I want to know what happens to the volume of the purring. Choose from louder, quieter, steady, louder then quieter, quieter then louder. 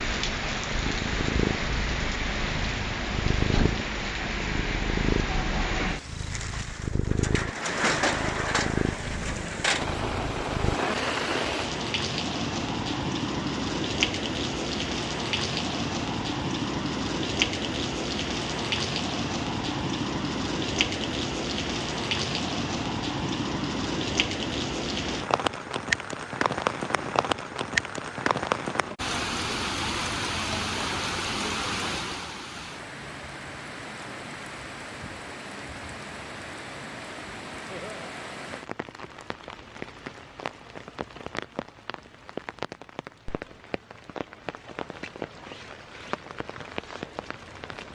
steady.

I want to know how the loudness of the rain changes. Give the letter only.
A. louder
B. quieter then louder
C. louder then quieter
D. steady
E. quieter
E.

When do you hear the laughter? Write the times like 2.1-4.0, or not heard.
37.6-38.1.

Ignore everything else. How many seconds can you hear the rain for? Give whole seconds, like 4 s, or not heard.
48 s.